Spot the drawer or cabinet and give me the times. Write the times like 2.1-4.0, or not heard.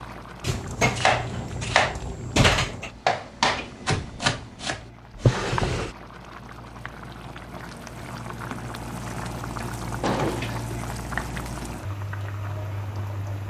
0.4-2.9, 5.2-5.9, 10.0-10.7.